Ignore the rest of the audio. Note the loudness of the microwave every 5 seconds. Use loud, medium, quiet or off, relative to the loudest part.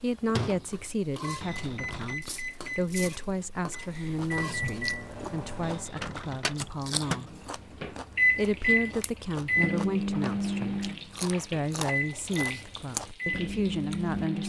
medium, loud, loud.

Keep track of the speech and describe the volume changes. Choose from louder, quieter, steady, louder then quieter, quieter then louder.
steady.